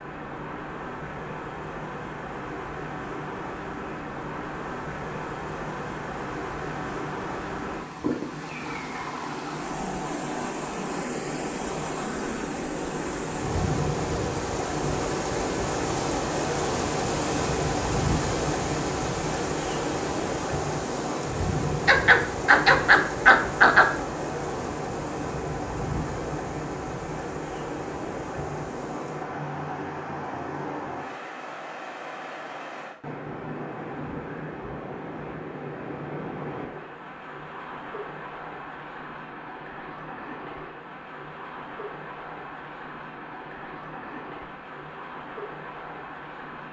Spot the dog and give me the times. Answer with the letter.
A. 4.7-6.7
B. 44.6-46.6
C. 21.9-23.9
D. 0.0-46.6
C.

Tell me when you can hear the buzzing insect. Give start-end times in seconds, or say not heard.
not heard.